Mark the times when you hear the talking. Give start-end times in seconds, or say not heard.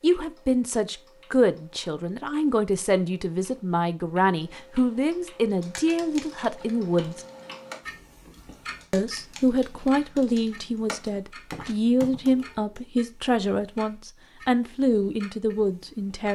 0.0-7.2, 8.9-16.3.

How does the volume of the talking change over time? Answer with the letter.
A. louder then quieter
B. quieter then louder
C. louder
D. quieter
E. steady
E.